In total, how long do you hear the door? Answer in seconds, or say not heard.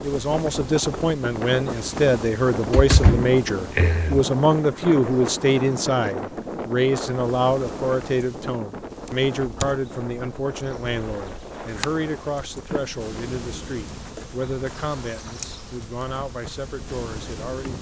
3 s.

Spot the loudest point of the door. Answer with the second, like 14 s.
3 s.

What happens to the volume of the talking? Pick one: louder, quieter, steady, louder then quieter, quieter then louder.
quieter.